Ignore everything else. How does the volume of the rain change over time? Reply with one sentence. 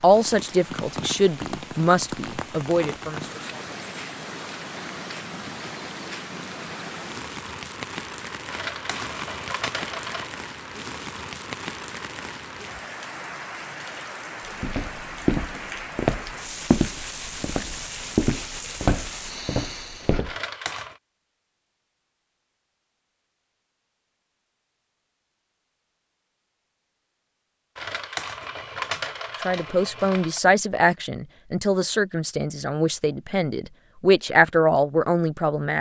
The volume of the rain stays about the same.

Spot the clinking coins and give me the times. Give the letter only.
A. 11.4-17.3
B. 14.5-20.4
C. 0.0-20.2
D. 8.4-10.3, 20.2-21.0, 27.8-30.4
D.